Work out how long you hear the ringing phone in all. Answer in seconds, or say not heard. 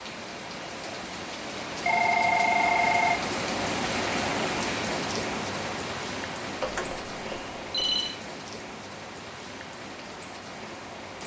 3 s.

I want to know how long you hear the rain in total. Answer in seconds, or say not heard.
11 s.